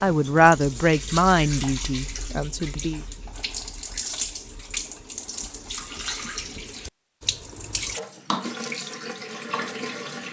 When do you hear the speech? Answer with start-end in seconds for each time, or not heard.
0.0-3.0.